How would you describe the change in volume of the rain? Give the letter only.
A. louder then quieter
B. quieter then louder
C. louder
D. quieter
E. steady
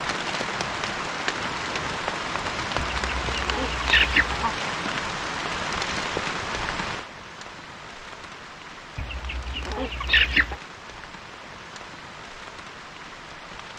D.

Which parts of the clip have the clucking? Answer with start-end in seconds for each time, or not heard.
2.8-4.5, 8.9-10.6.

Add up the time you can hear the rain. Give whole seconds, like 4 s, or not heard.
14 s.